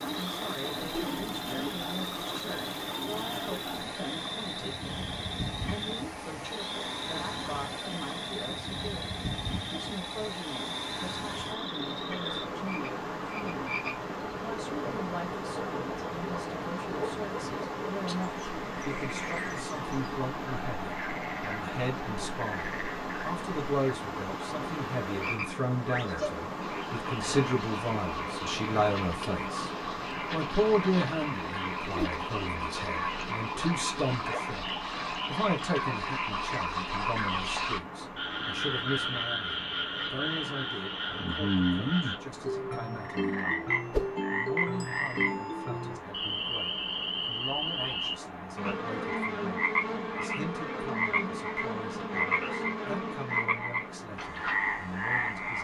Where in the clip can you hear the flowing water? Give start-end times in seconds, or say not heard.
0.0-55.5.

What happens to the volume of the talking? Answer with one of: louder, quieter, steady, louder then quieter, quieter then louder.
louder then quieter.